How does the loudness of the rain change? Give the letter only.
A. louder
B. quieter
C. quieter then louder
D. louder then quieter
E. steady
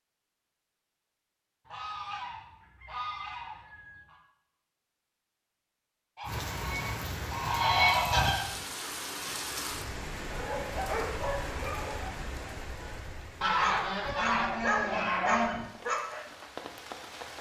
B.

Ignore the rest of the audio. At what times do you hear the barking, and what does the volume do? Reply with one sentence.
The barking can be heard from 10.3 to 16.2 s, getting quieter then louder.